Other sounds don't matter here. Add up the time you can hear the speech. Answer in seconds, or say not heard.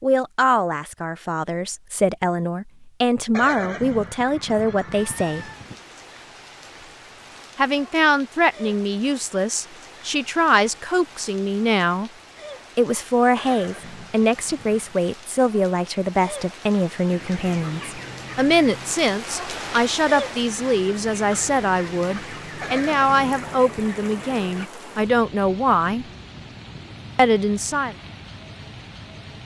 24 s.